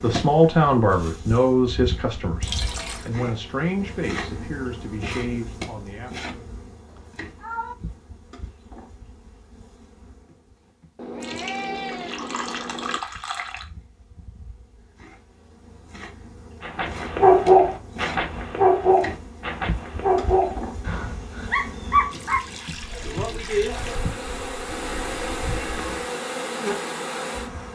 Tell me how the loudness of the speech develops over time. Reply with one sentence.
The volume of the speech goes down.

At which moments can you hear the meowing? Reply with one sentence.
You can hear the meowing from 6.9 to 7.8 s, from 10.9 to 13.0 s and from 24.7 to 26.1 s.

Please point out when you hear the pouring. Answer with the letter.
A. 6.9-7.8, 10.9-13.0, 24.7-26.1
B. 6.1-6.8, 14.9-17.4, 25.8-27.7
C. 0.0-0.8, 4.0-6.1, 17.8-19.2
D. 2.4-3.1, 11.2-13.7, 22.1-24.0
D.